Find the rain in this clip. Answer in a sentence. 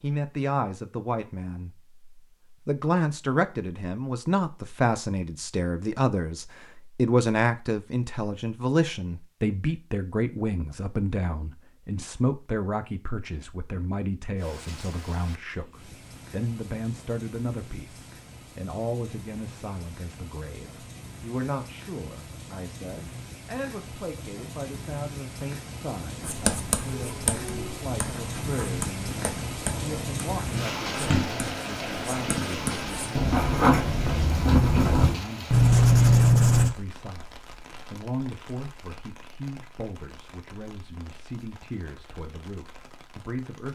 You can hear the rain from 14.3 to 43.7 s.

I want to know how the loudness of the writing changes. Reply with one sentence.
The loudness of the writing goes up.